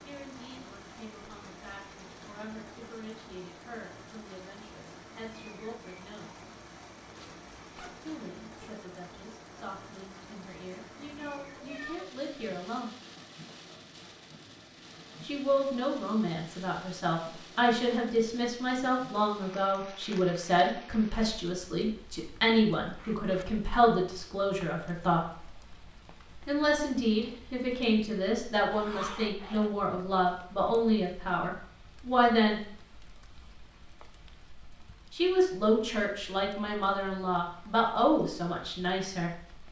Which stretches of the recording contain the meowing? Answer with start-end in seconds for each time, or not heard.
11.6-12.2.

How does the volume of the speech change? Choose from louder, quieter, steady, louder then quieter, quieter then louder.
louder.